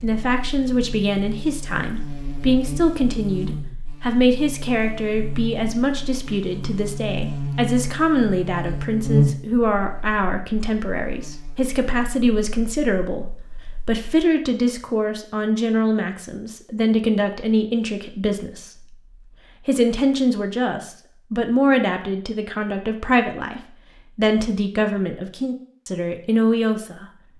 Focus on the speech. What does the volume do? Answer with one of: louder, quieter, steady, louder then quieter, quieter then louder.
steady.